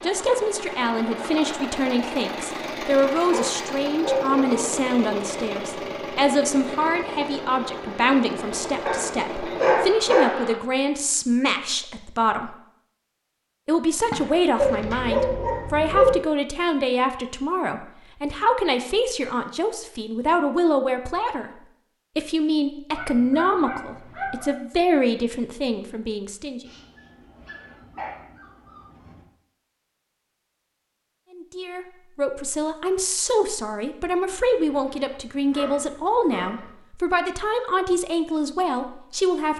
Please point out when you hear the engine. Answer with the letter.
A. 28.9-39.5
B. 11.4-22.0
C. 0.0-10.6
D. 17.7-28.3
C.